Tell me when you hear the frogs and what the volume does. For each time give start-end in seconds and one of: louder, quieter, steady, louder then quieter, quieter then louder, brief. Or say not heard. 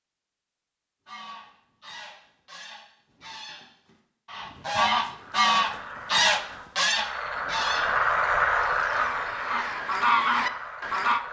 5.1-11.2 louder then quieter.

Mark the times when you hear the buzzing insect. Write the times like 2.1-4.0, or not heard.
not heard.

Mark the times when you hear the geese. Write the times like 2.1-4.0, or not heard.
1.1-11.2.